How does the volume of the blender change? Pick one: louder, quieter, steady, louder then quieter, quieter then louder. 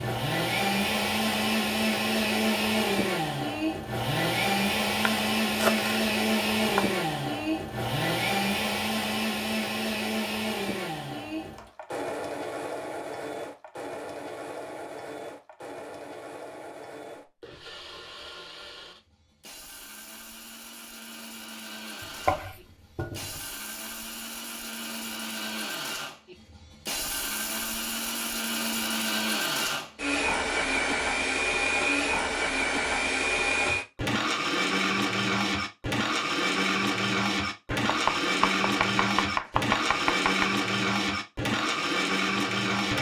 quieter then louder.